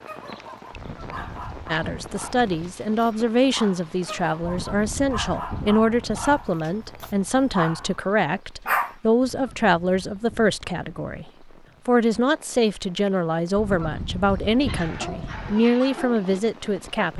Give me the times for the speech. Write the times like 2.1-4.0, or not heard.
1.7-17.1.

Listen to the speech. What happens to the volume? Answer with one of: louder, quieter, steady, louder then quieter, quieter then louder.
steady.